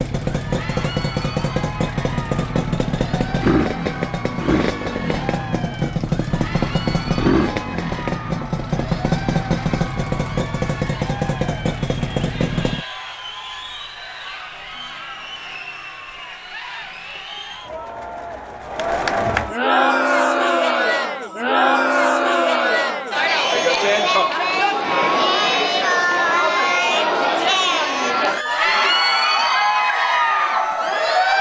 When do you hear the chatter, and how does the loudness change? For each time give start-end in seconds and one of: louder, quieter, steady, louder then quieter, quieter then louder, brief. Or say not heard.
0.2-31.3 louder.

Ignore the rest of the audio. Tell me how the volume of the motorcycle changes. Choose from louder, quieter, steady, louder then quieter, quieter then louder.
steady.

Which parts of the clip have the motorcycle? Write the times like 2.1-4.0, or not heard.
0.0-12.8.